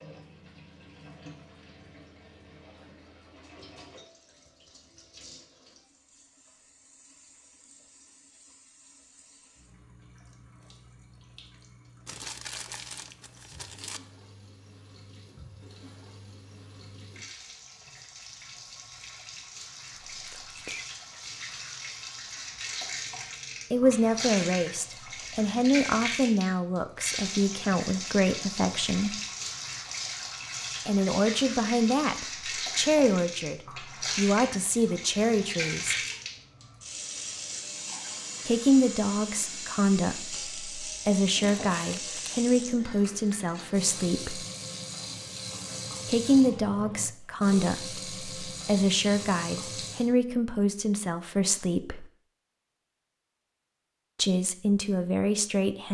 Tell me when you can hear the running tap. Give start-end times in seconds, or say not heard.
0.0-50.1.